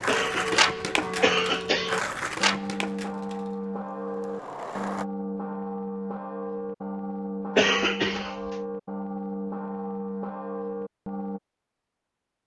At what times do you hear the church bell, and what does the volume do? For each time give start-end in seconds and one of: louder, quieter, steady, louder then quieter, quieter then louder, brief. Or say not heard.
0.1-11.4 steady.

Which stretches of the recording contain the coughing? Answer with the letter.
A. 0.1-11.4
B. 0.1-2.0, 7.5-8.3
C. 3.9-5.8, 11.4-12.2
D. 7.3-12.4
B.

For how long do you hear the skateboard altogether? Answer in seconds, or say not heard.
5 s.